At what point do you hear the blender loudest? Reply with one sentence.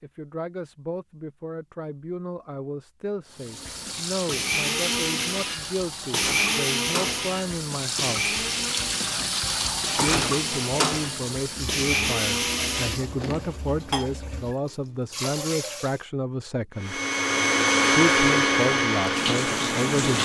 The loudest moment of the blender is at 18 seconds.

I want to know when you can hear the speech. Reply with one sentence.
The speech can be heard from 0.0 to 8.3 s, from 9.9 to 17.0 s and from 17.9 to 20.2 s.